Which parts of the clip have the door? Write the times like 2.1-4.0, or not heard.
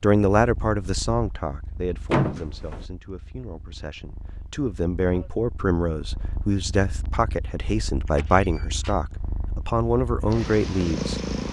2.1-2.9, 8.1-8.9.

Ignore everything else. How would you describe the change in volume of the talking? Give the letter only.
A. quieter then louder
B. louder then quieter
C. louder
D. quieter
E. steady
A.